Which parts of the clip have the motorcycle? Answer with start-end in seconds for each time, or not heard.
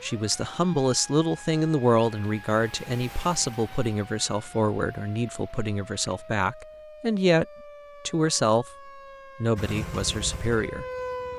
9.6-11.3.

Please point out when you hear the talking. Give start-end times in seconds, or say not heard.
0.0-7.5, 8.1-10.8.